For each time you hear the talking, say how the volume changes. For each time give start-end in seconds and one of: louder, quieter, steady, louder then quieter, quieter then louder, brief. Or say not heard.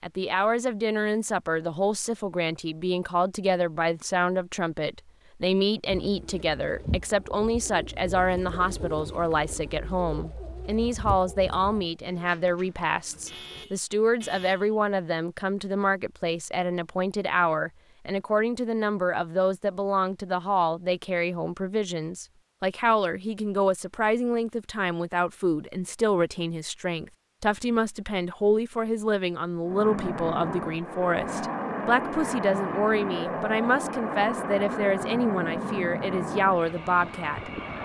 0.0-37.8 steady.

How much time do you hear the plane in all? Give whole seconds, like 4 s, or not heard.
8 s.